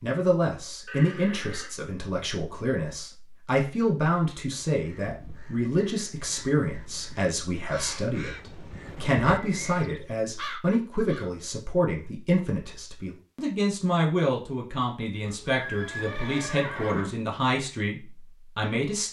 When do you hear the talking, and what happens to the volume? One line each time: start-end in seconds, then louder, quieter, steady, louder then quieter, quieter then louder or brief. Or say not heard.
0.0-19.0 steady.